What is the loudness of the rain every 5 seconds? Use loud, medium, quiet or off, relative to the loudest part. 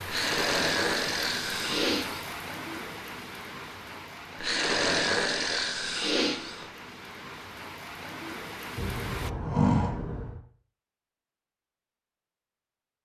loud, loud, off.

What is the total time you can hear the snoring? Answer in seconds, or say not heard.
6 s.